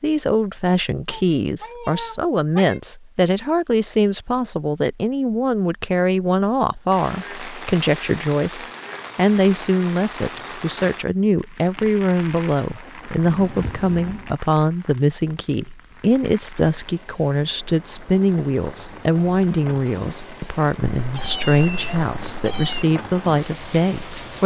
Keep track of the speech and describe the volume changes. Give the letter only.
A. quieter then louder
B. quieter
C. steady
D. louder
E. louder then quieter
C.